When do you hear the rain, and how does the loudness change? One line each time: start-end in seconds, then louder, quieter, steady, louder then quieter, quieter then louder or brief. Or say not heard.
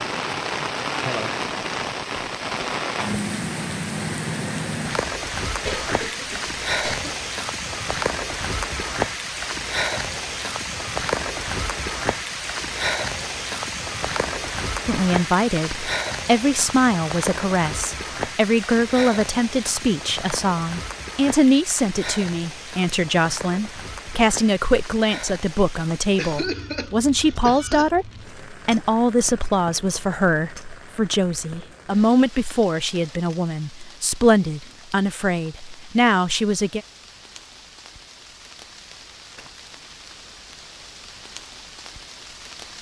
0.0-42.7 quieter.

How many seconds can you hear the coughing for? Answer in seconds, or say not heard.
3 s.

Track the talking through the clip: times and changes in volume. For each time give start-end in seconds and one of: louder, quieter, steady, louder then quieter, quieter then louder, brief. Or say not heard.
14.8-36.8 steady.